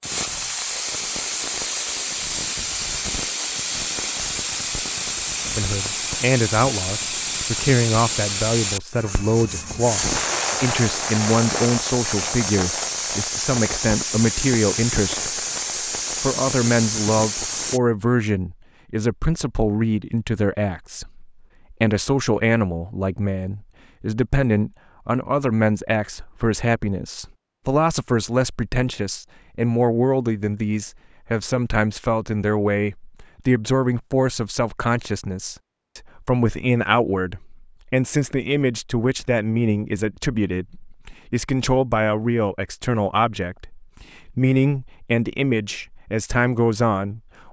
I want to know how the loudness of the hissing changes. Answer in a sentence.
The loudness of the hissing stays about the same.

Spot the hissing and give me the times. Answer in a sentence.
The hissing can be heard from 0.0 to 17.8 s.